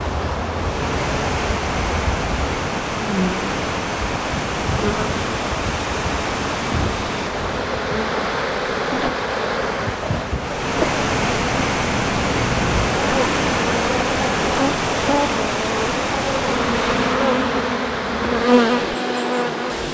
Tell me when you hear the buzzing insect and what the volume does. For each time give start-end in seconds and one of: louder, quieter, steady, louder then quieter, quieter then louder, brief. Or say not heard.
0.0-19.8 louder.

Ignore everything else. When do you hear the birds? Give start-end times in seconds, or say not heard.
not heard.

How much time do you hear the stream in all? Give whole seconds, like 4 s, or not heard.
20 s.